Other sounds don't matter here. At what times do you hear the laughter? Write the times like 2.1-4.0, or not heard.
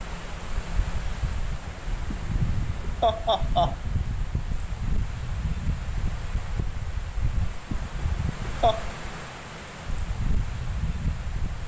2.1-3.8, 7.7-8.9.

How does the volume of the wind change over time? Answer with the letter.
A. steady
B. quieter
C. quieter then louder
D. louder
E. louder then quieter
A.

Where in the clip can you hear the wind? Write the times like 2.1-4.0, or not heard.
0.0-11.6.